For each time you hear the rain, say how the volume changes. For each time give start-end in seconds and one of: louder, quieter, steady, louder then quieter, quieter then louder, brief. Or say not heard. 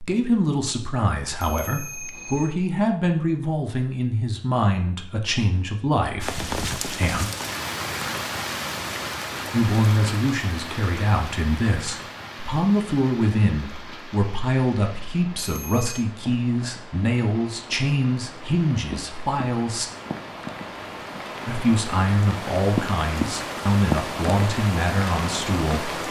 6.2-26.0 quieter then louder.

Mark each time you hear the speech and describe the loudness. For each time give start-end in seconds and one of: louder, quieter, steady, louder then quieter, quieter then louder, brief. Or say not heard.
0.0-7.3 steady
9.5-19.9 steady
21.4-26.0 steady.